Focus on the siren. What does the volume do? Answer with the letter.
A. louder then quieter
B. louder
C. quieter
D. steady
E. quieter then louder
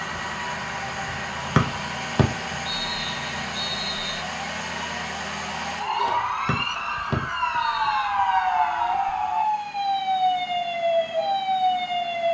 B.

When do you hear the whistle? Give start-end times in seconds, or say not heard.
1.6-4.2, 6.5-8.1.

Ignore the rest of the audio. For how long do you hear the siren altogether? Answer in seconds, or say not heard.
12 s.